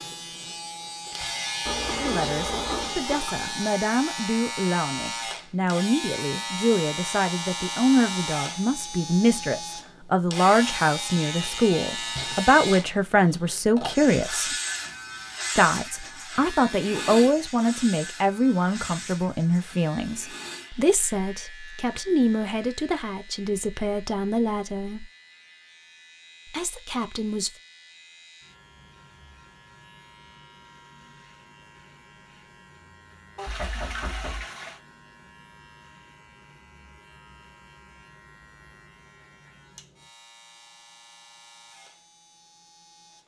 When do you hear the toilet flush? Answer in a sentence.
The toilet flush can be heard from 1.6 to 3.6 s and from 33.4 to 34.8 s.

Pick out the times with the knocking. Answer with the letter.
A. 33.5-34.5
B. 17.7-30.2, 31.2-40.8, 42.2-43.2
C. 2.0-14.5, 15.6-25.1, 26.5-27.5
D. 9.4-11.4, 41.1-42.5
A.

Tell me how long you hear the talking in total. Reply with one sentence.
The talking can be heard for 23 seconds in total.